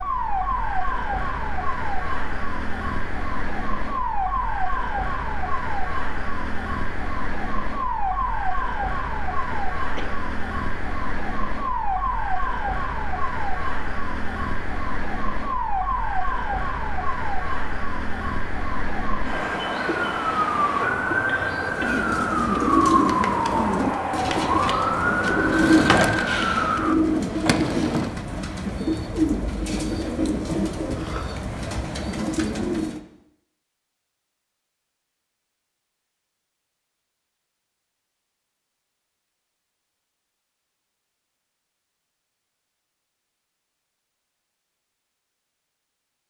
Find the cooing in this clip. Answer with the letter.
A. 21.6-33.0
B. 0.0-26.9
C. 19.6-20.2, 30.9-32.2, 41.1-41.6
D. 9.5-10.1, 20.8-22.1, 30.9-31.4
A.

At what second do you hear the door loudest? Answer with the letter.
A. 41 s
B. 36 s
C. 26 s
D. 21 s
C.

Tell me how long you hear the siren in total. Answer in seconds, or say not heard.
27 s.